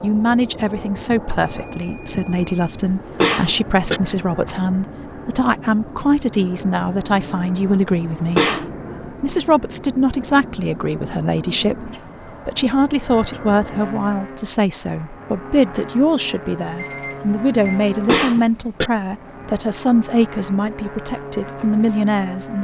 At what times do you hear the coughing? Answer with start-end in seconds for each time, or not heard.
2.8-4.0, 7.9-8.7, 17.6-18.9.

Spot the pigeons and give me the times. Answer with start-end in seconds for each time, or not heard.
not heard.